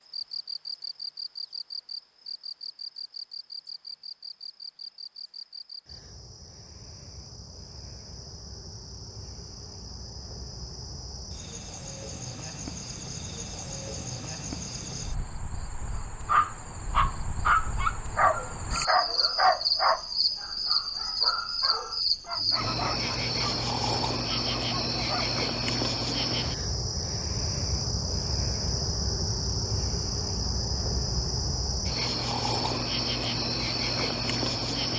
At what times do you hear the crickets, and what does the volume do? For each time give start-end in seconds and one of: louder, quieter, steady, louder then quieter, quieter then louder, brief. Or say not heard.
0.0-34.9 louder.